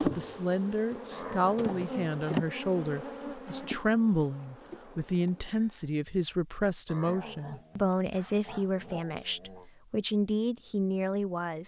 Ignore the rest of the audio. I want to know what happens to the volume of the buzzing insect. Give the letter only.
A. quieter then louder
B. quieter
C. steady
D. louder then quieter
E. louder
D.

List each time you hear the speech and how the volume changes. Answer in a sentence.
You can hear the speech from 0.0 to 11.6 s, at a steady volume.